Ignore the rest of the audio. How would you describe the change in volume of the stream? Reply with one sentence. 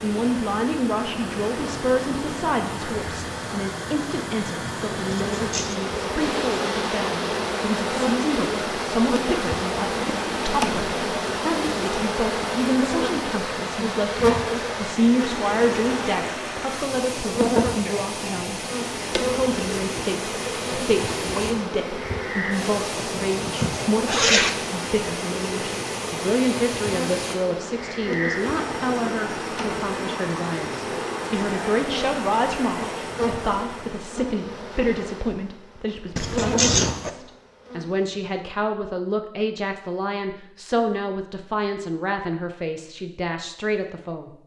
The volume of the stream stays about the same.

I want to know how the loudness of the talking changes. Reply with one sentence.
The loudness of the talking stays about the same.